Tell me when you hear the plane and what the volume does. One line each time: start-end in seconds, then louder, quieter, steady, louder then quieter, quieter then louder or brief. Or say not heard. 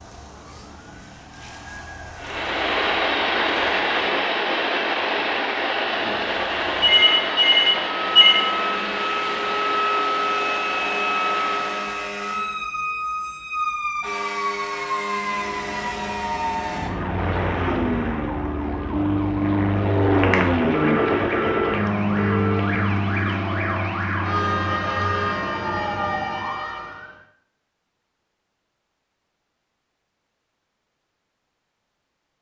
2.2-12.1 quieter
15.2-26.6 louder then quieter.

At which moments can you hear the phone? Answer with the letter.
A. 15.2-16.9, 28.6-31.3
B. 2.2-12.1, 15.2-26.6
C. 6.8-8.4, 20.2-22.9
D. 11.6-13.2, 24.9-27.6
C.